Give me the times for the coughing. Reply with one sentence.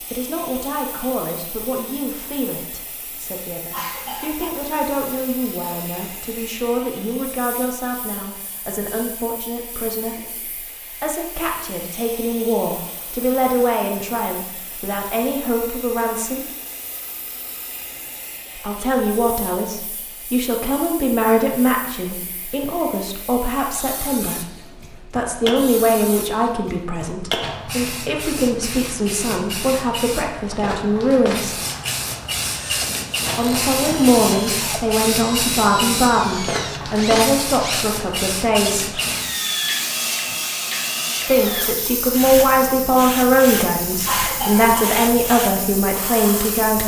You can hear the coughing from 3.7 to 4.5 s and from 44.0 to 44.8 s.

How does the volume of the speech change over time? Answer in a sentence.
The volume of the speech goes up.